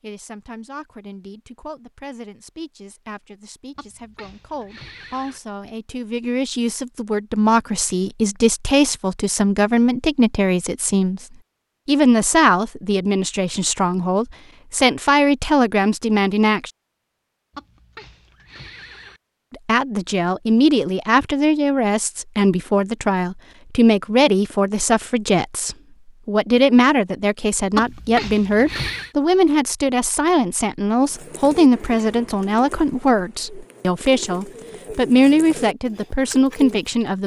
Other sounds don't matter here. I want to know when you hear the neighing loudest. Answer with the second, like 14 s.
28 s.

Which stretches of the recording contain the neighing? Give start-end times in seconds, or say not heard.
3.8-5.4, 17.5-19.2, 27.7-29.1.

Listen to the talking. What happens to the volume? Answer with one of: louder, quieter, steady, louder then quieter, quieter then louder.
louder.